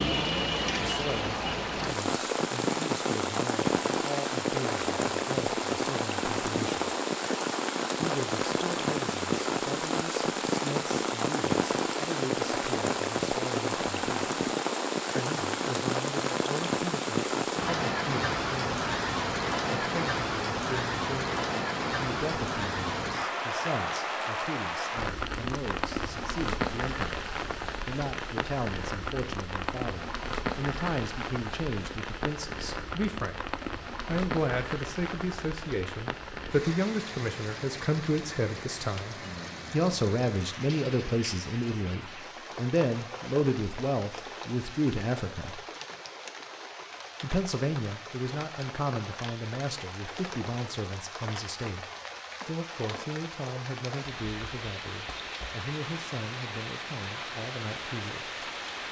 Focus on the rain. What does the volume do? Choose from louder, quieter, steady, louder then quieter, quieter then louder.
quieter.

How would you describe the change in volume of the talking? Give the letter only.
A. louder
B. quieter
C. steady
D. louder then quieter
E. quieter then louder
D.